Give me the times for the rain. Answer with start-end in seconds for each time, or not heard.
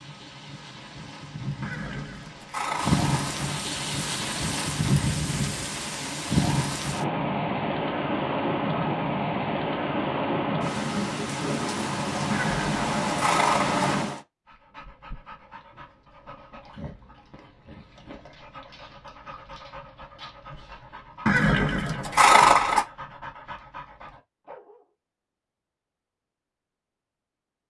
0.0-14.2.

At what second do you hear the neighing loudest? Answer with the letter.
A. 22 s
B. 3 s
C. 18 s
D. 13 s
A.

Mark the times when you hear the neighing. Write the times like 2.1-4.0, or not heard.
1.6-3.1, 12.3-13.8, 21.2-22.9.